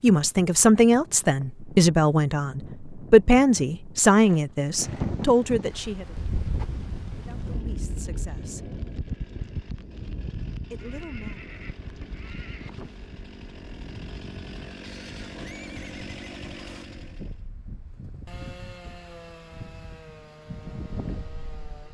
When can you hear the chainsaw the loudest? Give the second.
16 s.